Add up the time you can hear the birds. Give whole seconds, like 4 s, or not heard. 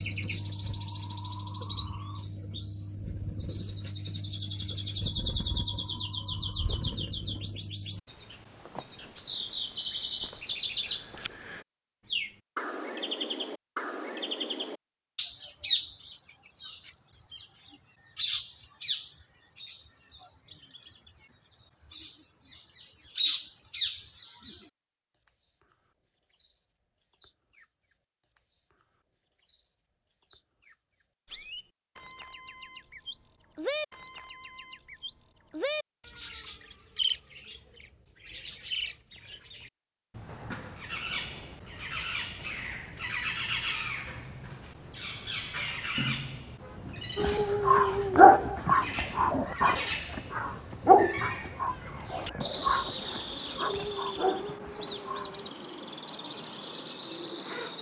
58 s.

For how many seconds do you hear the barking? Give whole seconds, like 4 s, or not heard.
8 s.